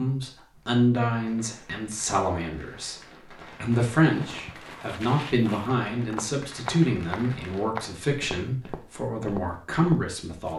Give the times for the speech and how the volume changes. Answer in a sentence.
You can hear the speech from 0.0 to 10.5 s, at a steady volume.